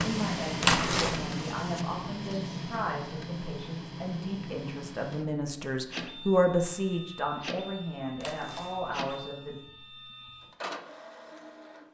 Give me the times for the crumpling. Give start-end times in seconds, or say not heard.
0.6-1.2, 8.2-9.1.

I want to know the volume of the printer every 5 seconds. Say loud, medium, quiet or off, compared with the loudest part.
loud, medium, medium.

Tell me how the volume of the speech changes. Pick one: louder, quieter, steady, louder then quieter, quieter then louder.
louder then quieter.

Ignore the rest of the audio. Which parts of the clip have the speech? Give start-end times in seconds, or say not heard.
0.0-9.6.